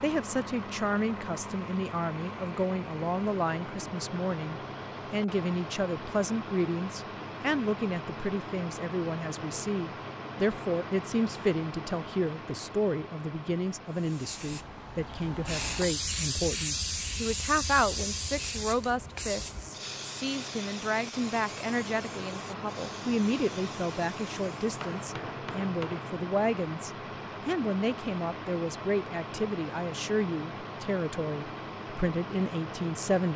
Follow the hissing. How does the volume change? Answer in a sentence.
The volume of the hissing goes down.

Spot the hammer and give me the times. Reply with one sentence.
You can hear the hammer from 24.7 to 26.2 s.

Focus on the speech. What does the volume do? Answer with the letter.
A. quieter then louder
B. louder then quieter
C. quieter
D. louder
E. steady
E.